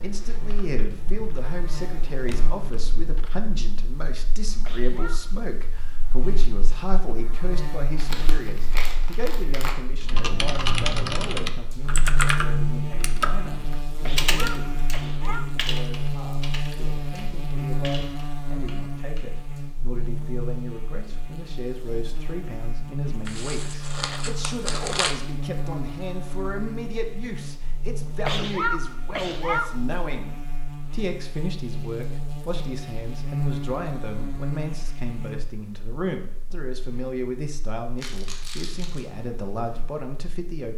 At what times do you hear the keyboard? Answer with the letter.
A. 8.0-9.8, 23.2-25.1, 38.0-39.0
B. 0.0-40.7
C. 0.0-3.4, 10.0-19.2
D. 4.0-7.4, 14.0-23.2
C.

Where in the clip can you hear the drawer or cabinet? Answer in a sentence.
You can't hear the drawer or cabinet here.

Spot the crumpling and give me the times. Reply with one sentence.
You can hear the crumpling from 8.0 to 9.8 s, from 23.2 to 25.1 s and from 38.0 to 39.0 s.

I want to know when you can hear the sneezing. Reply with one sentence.
The sneezing can be heard from 4.5 to 5.4 s, from 13.9 to 15.5 s and from 28.1 to 29.8 s.